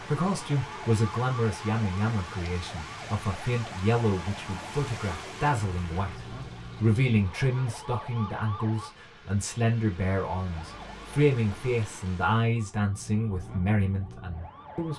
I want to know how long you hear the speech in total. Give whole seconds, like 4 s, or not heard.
15 s.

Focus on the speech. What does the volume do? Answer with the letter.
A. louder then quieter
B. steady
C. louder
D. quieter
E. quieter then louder
B.